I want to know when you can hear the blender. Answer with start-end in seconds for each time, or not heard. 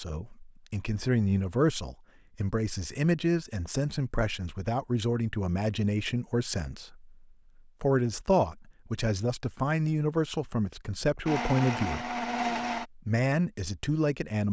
11.2-12.8.